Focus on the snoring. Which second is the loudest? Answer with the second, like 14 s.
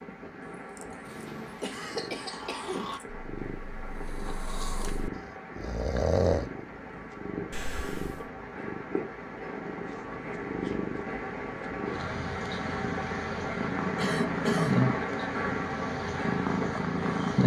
6 s.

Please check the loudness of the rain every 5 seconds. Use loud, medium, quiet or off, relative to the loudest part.
medium, medium, loud, loud.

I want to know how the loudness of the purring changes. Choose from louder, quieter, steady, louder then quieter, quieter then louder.
louder.